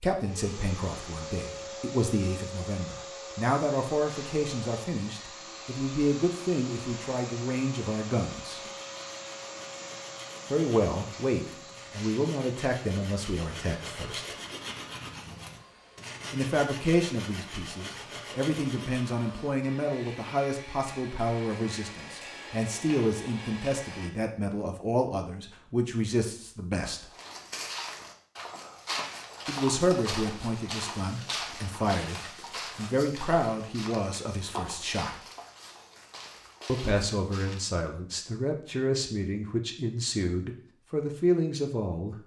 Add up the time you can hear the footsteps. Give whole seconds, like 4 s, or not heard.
11 s.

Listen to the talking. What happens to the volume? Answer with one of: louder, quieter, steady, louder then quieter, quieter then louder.
steady.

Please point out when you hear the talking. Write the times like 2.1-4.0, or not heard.
0.0-8.6, 10.5-14.2, 16.3-27.1, 29.4-35.2, 36.6-42.2.